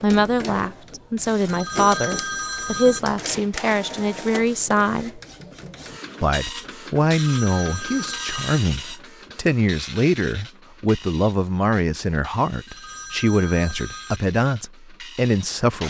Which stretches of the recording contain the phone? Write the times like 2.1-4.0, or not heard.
1.5-3.0, 7.2-8.6, 12.7-14.2.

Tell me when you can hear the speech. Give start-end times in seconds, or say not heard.
0.0-5.2, 6.2-15.8.